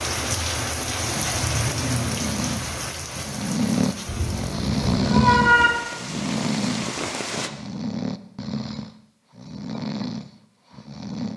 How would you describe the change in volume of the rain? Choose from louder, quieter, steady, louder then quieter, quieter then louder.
quieter then louder.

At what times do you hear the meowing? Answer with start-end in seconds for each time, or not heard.
4.0-5.7.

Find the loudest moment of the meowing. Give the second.
5 s.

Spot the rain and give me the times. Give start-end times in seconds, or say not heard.
0.0-7.5.